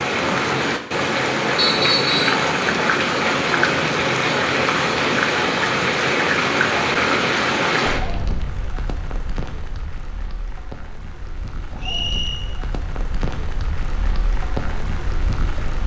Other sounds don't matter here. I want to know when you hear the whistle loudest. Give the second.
2 s.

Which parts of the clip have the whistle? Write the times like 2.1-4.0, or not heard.
1.6-2.4, 11.8-12.4.